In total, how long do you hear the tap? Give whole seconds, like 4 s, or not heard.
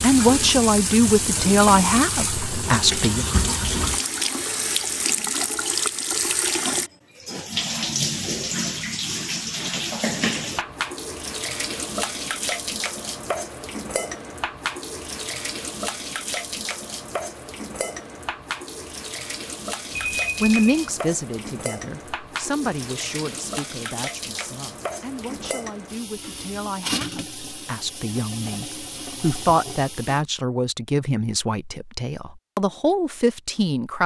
30 s.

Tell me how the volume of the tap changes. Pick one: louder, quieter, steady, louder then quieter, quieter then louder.
quieter.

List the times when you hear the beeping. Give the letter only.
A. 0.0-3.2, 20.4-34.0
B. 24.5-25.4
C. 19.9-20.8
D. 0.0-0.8
C.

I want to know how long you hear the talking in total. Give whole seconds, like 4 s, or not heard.
17 s.